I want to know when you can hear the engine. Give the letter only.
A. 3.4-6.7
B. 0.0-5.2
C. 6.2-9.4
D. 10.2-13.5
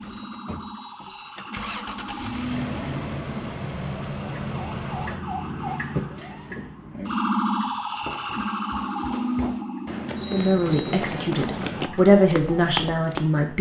B.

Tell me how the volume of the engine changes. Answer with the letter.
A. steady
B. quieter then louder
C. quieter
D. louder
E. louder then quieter
D.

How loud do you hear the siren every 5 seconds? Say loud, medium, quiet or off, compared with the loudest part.
medium, loud, medium.